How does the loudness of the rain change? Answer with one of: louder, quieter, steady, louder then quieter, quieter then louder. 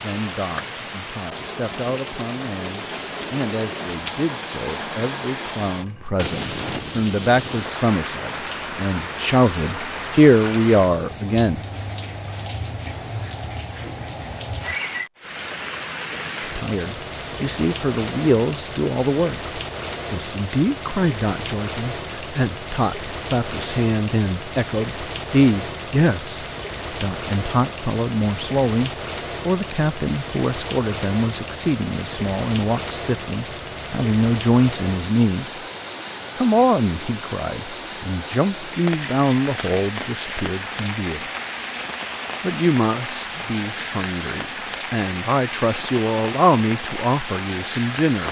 steady.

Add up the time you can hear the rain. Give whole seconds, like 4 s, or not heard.
48 s.